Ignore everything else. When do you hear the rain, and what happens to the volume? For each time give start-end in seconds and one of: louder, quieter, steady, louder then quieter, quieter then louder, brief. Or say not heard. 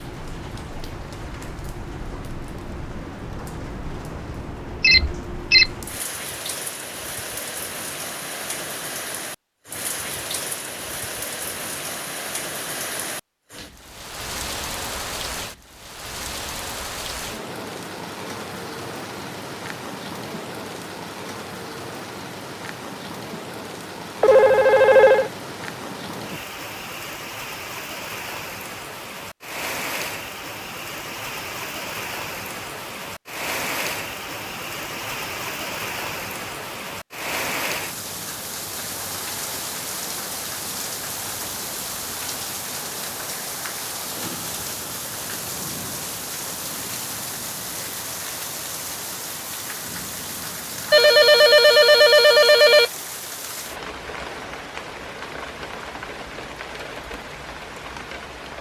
0.0-58.5 steady.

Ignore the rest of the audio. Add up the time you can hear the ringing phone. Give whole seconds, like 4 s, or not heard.
4 s.